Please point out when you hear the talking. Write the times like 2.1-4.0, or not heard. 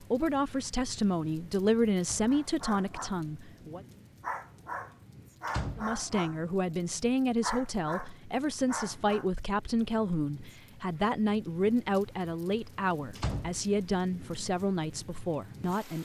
0.0-3.8, 5.8-15.9.